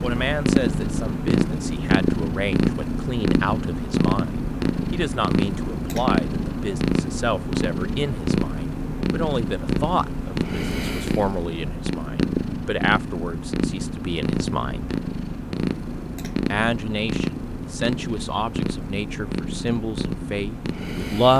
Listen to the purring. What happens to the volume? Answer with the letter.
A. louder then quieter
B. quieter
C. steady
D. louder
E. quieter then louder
B.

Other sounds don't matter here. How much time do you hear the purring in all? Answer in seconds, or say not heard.
21 s.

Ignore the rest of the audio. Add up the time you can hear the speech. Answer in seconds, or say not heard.
20 s.